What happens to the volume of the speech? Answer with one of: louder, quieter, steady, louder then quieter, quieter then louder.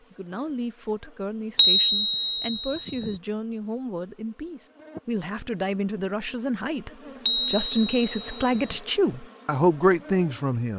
louder.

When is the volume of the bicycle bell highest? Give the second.
2 s.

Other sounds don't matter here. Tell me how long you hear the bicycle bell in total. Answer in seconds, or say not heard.
3 s.